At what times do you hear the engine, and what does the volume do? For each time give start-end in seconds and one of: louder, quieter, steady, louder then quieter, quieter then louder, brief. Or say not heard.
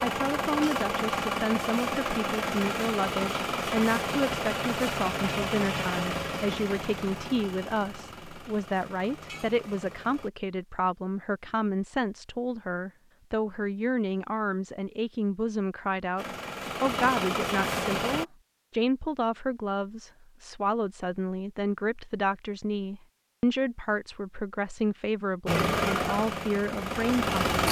0.0-10.3 quieter
16.1-18.2 brief
25.4-27.6 brief.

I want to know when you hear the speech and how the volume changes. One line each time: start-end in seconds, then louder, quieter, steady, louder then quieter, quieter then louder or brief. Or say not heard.
0.0-27.6 steady.